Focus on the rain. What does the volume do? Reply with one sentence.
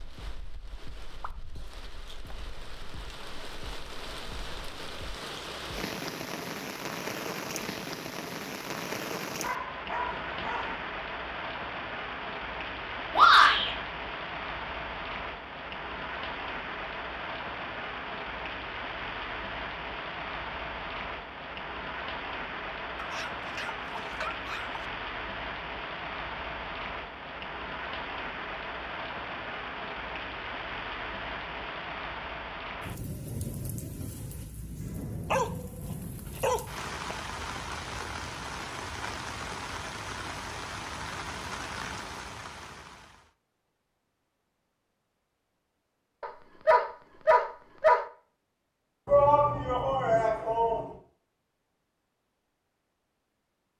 The volume of the rain stays about the same.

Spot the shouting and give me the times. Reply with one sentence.
You can hear the shouting from 13.1 to 13.7 s and from 49.0 to 50.9 s.